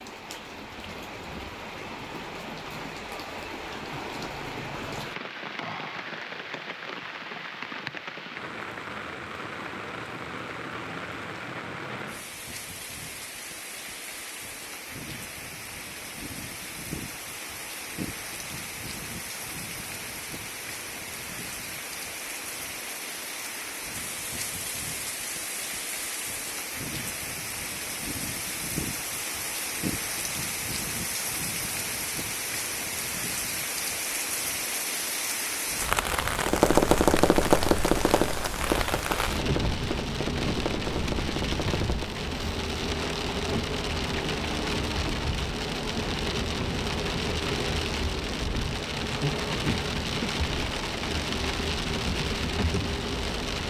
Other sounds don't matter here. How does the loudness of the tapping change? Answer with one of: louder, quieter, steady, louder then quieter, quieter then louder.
quieter.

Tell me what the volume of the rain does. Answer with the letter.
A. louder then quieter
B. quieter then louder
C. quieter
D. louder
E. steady
D.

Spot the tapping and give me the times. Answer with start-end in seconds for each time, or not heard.
36.5-42.2.